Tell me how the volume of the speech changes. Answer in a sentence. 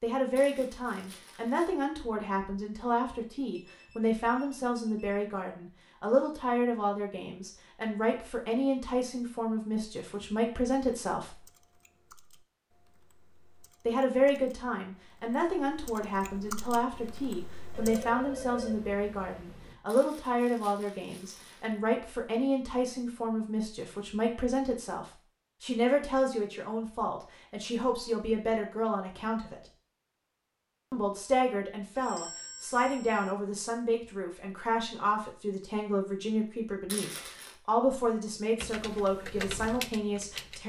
The volume of the speech stays about the same.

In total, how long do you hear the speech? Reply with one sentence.
You can hear the speech for 37 seconds altogether.